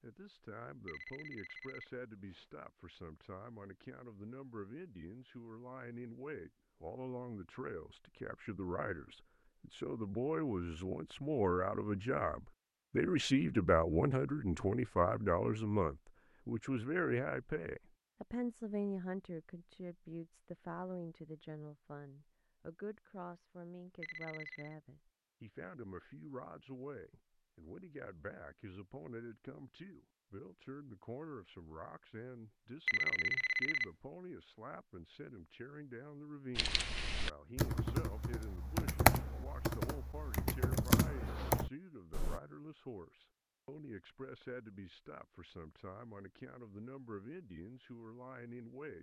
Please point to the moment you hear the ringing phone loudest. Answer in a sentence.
The loudest moment of the ringing phone is at 33 seconds.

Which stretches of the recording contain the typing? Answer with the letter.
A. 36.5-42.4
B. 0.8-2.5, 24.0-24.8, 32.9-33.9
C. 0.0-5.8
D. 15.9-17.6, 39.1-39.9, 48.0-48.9
A.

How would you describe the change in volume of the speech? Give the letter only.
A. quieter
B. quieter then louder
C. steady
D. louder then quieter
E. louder
D.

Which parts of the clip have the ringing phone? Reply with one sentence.
You can hear the ringing phone from 0.8 to 2.5 s, from 24.0 to 24.8 s and from 32.9 to 33.9 s.